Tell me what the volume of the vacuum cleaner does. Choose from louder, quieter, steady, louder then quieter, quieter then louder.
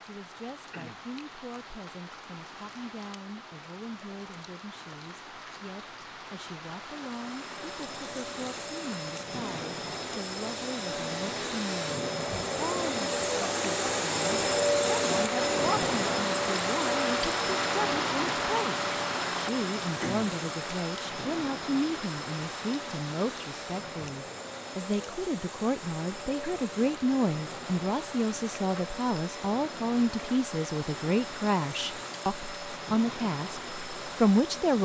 louder then quieter.